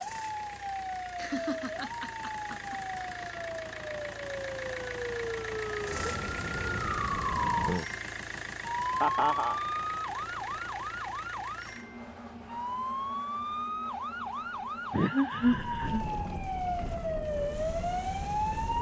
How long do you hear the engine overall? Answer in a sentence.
You can hear the engine for 19 seconds altogether.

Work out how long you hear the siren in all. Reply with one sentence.
The siren can be heard for 19 seconds in total.